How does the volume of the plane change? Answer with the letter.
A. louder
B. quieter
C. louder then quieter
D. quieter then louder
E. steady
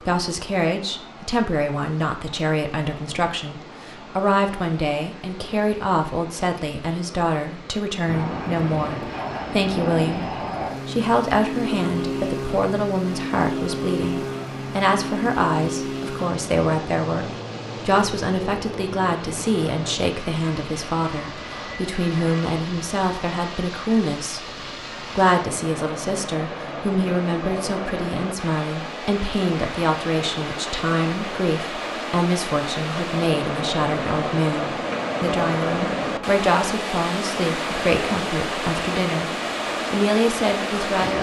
B.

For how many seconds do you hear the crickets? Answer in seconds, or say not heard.
not heard.